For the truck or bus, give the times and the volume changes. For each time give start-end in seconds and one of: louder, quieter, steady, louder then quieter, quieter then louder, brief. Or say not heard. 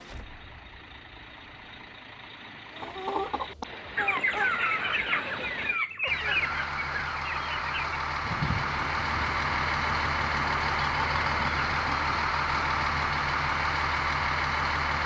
0.0-15.0 louder.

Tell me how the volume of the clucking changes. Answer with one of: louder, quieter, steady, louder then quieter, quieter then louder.
quieter.